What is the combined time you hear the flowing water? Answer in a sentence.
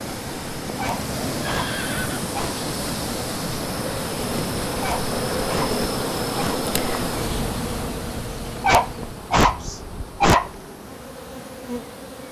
You can hear the flowing water for 12 seconds altogether.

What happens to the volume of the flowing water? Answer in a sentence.
The volume of the flowing water goes down.